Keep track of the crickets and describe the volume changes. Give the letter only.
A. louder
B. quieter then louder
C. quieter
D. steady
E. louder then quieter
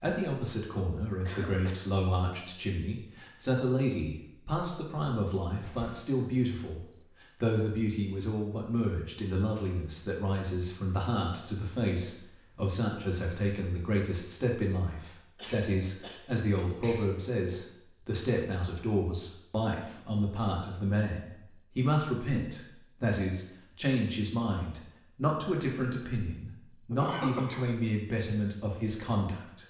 C.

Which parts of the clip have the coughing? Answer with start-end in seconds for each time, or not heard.
1.2-1.9, 15.3-17.1, 26.9-27.6.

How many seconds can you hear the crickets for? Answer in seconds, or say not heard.
24 s.